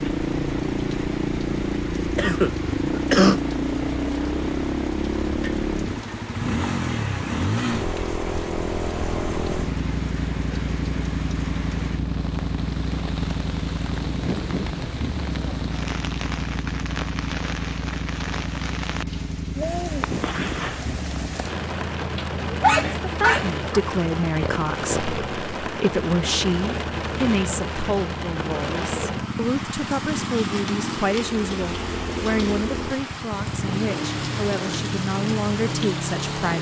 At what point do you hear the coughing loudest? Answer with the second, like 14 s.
3 s.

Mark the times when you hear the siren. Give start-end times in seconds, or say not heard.
not heard.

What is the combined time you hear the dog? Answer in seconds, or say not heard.
2 s.